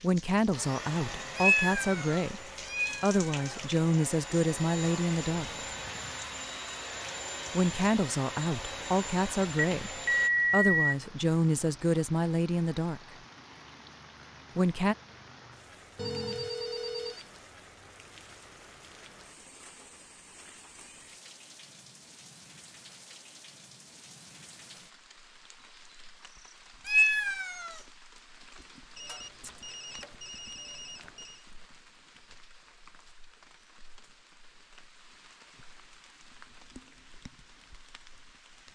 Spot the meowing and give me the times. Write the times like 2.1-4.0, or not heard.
1.4-3.6, 26.9-27.8.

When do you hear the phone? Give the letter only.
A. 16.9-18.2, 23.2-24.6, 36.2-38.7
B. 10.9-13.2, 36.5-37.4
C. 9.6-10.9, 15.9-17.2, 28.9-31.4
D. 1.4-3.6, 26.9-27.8
C.